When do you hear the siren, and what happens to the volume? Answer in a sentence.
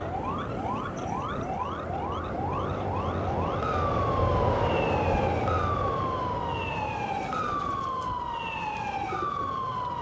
The siren can be heard from 0.0 to 9.9 s, at a steady volume.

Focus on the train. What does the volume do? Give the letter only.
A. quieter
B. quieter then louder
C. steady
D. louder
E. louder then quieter
E.